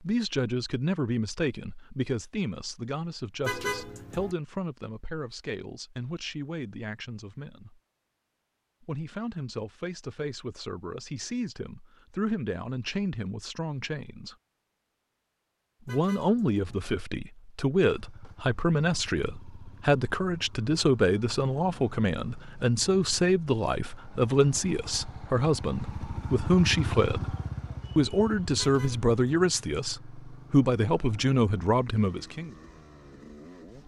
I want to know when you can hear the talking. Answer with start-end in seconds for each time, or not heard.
0.0-7.8, 8.8-14.3, 15.8-27.4, 27.9-32.5.